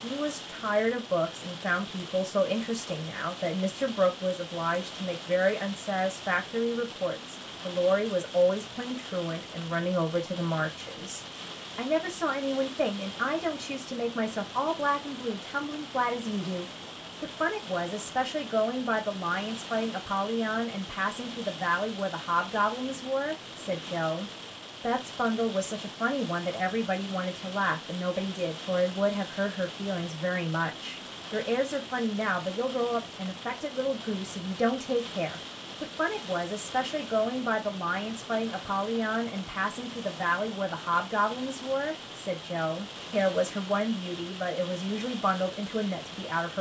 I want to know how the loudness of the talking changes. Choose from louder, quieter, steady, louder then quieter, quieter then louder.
steady.